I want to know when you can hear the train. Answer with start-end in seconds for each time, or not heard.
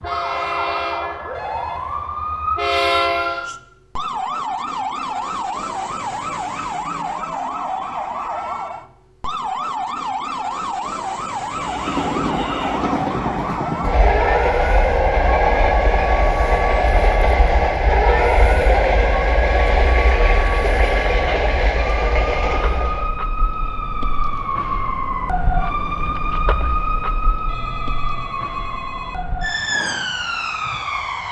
0.0-3.5, 11.6-23.1.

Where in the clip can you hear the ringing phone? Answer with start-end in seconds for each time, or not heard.
1.3-2.1, 27.4-29.2.